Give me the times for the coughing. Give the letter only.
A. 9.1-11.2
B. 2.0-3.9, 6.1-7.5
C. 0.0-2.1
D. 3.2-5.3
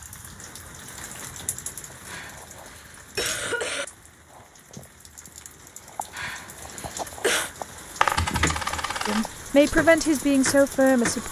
B.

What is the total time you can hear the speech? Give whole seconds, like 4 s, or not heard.
2 s.